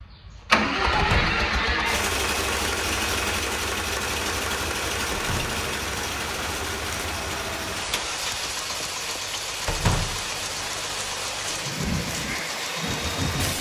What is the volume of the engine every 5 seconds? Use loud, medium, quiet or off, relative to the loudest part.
loud, medium, medium.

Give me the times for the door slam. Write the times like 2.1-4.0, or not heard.
0.9-1.4, 5.1-5.6, 9.7-10.2.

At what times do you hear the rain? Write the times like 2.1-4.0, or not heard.
4.0-13.5.